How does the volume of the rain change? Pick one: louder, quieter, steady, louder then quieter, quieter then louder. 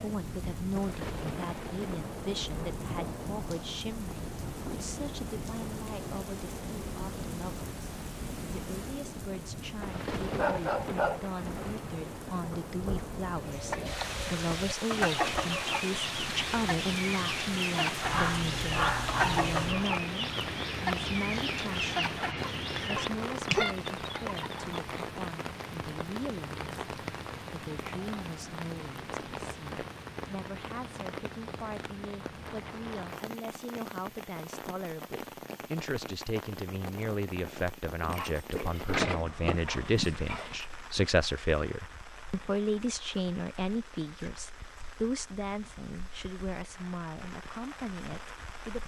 quieter.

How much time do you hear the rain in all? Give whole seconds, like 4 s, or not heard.
49 s.